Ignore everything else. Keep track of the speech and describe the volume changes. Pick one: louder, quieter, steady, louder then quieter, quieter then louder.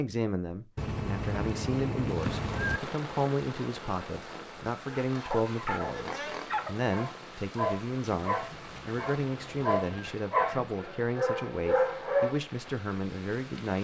steady.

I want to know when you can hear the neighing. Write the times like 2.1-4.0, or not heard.
0.8-2.8, 8.2-10.2.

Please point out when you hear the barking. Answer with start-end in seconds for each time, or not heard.
4.9-12.4.